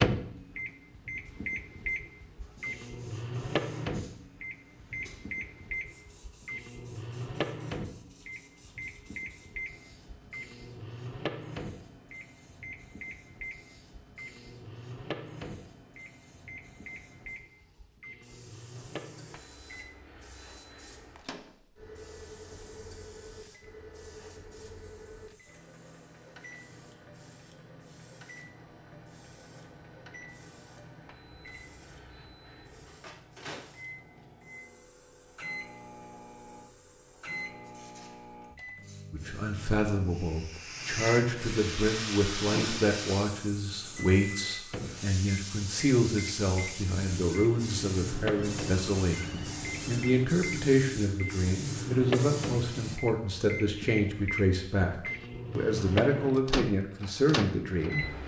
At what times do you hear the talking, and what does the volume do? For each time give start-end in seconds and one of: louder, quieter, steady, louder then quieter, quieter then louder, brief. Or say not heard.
39.1-58.0 steady.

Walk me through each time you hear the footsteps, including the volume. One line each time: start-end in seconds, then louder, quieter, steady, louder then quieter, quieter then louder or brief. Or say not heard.
not heard.